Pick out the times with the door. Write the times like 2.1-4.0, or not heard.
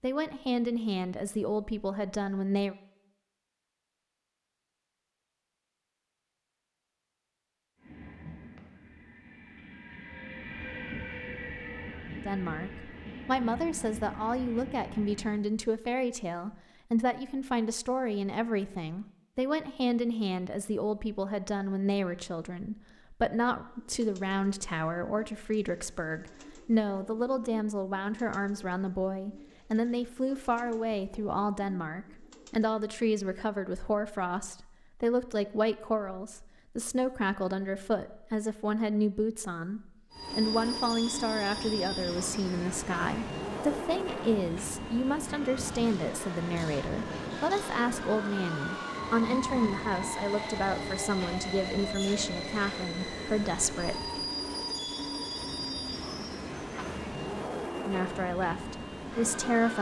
not heard.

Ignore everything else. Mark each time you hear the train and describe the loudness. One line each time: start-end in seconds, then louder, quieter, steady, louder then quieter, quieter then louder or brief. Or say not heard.
7.8-15.4 louder
40.1-59.7 steady.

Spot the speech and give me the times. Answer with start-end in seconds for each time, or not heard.
0.0-2.8, 12.2-54.1, 57.9-59.7.